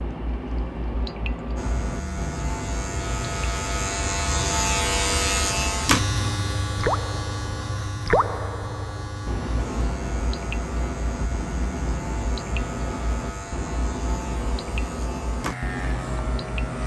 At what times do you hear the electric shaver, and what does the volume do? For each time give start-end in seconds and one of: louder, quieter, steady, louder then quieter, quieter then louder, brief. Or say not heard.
1.6-16.8 quieter.